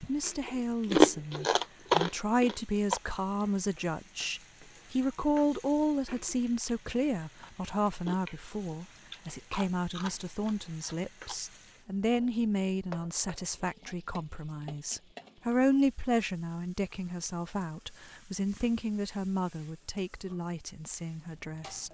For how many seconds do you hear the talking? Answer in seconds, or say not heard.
22 s.